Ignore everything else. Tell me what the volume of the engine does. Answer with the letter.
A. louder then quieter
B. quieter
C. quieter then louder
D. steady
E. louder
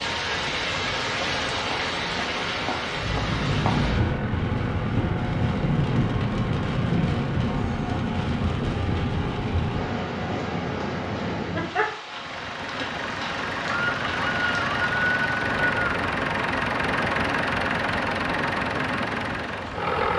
E.